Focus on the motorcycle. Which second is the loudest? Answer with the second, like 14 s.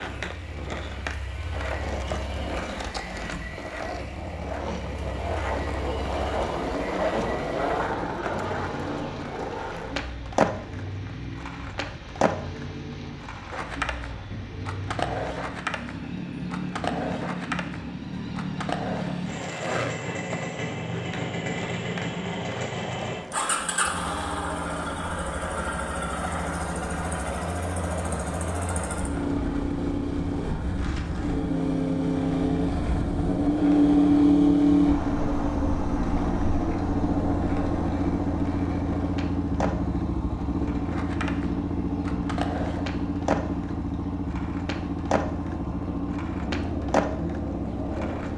34 s.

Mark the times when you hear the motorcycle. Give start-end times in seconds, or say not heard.
0.0-48.3.